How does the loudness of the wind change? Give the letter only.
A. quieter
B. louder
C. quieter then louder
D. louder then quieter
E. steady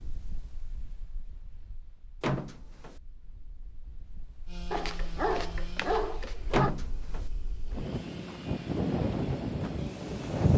B.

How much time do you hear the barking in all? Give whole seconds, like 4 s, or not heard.
2 s.